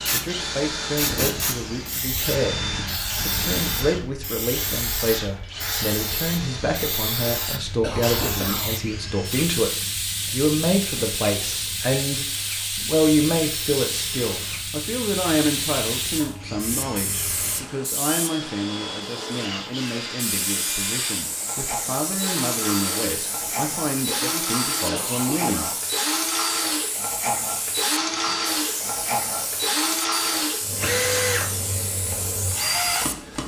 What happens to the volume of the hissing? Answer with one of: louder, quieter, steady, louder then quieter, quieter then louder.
steady.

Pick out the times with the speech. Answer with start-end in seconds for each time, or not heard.
0.0-25.7.